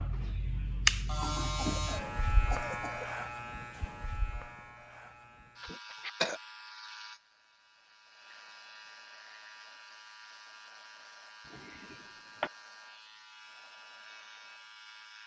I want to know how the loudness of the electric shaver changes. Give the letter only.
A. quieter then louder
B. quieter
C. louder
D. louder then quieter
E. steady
B.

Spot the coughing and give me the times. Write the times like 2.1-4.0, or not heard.
1.6-3.1, 5.6-6.4, 11.5-12.5.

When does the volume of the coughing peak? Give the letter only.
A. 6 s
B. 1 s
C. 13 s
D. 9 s
A.